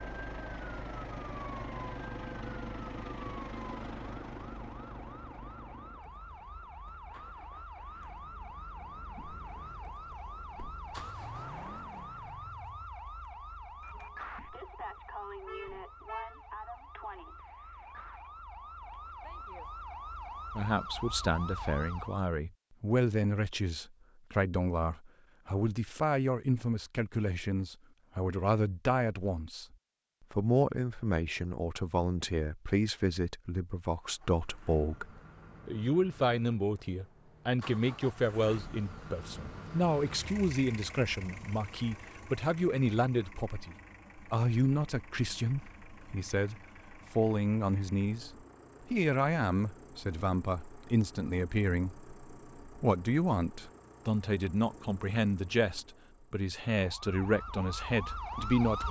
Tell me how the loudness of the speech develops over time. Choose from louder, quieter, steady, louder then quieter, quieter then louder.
steady.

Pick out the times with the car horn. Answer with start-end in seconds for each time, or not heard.
15.4-16.4.